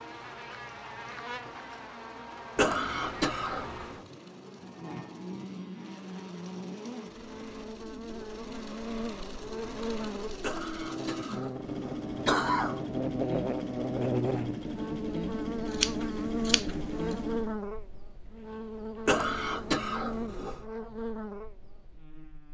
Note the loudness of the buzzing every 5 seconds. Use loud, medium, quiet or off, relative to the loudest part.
medium, medium, loud, loud, medium.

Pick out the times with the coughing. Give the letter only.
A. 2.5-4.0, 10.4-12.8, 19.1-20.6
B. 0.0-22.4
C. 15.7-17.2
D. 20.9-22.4
A.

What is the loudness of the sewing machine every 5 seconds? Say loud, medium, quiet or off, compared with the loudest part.
quiet, medium, loud, loud, off.